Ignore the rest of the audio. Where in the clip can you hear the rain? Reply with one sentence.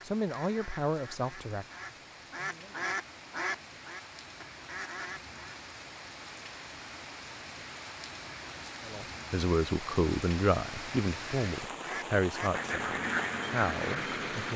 You can hear the rain from 0.0 to 14.5 s.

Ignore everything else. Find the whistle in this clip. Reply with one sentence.
The whistle can't be heard in this clip.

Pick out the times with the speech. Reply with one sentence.
You can hear the speech from 0.0 to 3.0 s and from 8.8 to 14.5 s.